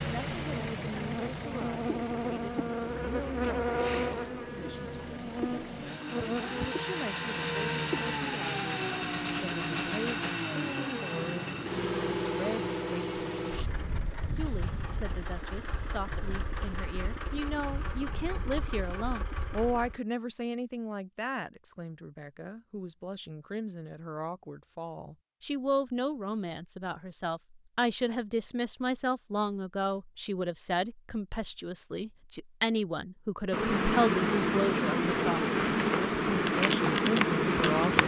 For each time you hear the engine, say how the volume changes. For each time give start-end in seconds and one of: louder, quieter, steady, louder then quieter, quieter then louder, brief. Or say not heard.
0.0-20.0 louder then quieter.